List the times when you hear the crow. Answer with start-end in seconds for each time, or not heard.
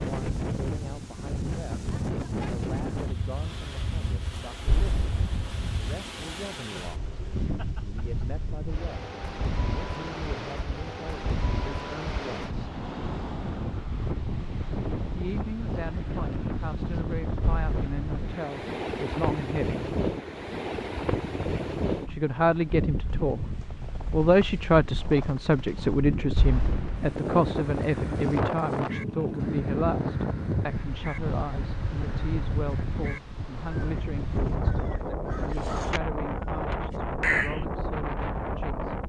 27.2-37.6.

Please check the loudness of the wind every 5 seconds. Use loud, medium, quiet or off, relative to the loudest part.
loud, medium, loud, loud, loud, loud, loud, loud.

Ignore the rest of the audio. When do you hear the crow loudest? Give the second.
37 s.